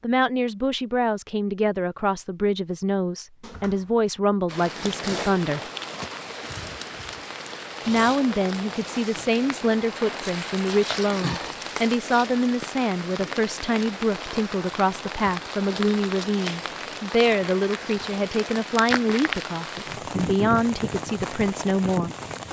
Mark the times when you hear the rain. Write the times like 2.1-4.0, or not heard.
4.5-22.4.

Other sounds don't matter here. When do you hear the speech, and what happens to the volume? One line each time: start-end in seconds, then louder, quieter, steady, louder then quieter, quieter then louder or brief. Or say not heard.
0.0-5.6 steady
7.8-22.1 steady.